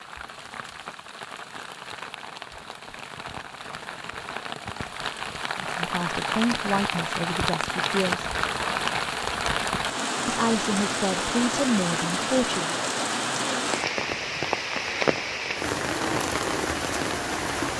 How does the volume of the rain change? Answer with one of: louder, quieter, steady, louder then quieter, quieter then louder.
louder.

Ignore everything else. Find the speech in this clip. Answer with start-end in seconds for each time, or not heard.
5.6-8.2, 10.2-12.8.